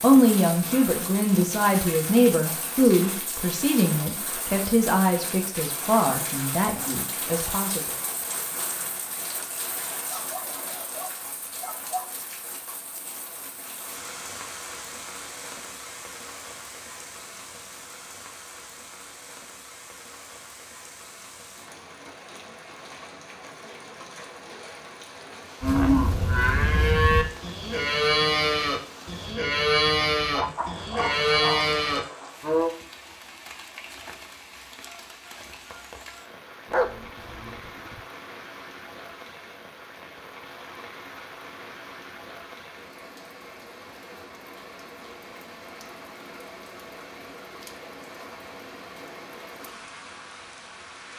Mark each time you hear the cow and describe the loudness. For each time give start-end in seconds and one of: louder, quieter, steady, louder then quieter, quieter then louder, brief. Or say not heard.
25.6-32.7 steady.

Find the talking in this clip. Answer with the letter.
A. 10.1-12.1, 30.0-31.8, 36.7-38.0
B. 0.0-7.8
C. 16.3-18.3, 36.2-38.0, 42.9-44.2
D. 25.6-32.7
B.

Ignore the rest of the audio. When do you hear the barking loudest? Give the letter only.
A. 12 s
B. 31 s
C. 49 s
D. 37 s
D.